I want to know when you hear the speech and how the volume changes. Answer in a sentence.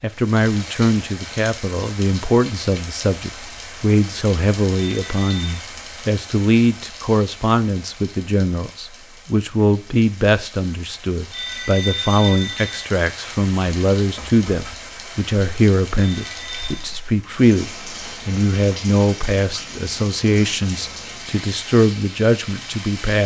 The speech can be heard from 0.0 to 23.2 s, at a steady volume.